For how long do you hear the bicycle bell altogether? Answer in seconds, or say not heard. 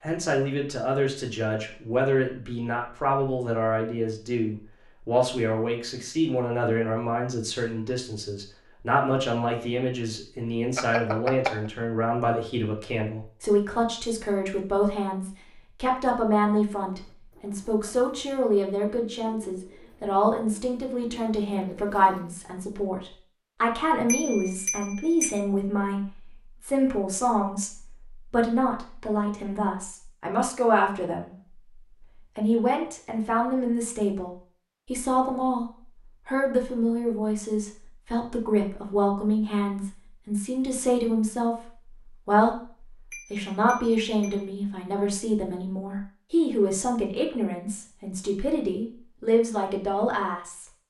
4 s.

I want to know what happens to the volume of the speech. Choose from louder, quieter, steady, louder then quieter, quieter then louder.
steady.